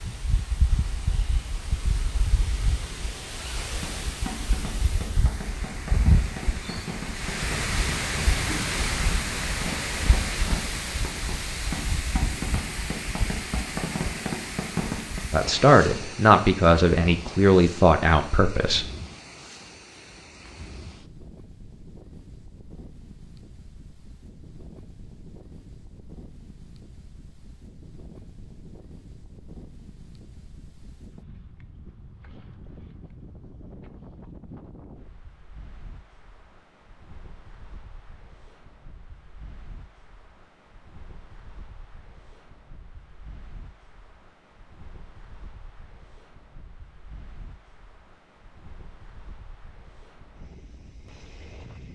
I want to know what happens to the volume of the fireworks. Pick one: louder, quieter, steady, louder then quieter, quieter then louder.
louder.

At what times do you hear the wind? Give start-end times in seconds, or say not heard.
0.0-51.9.